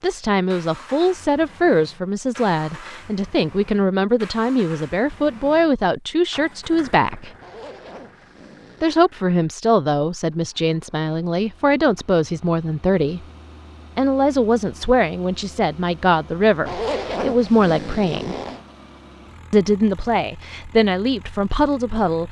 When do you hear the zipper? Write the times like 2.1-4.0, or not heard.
7.4-9.1, 16.6-18.6.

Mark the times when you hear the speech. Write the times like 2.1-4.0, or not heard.
0.0-7.3, 8.8-13.2, 13.9-18.4, 19.5-22.2.